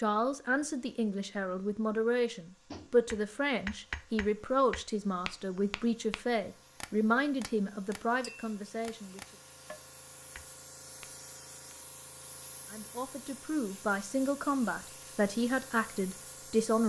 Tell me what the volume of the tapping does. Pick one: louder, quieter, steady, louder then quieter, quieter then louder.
quieter.